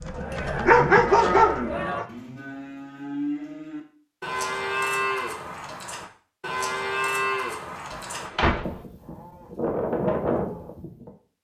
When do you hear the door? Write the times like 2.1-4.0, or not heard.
7.9-8.8.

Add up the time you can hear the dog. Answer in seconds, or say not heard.
2 s.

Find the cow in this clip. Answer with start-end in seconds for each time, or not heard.
0.0-11.1.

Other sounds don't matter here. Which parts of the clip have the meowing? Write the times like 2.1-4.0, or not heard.
not heard.